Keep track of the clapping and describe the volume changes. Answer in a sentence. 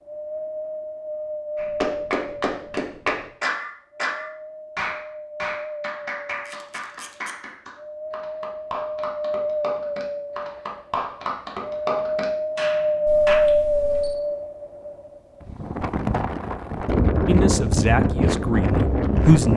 The volume of the clapping goes down, then up.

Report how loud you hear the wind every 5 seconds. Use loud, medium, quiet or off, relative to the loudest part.
medium, medium, loud, loud.